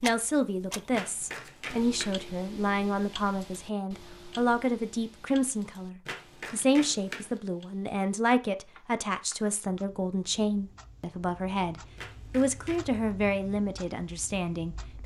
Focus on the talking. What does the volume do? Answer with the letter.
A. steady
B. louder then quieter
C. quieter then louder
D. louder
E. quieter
A.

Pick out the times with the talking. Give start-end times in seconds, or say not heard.
0.0-15.0.